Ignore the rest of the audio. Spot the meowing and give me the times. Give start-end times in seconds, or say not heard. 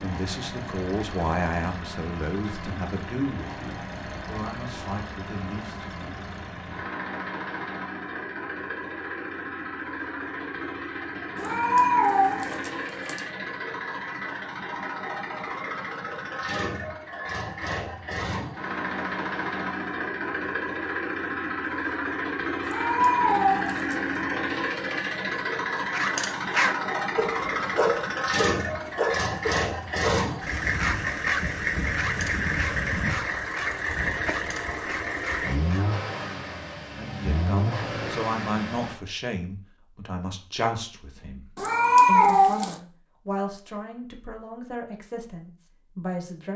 11.3-13.2, 22.6-24.0, 41.5-42.8.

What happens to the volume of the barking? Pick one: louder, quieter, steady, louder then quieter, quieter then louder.
quieter.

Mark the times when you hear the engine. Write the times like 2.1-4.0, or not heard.
0.0-39.0.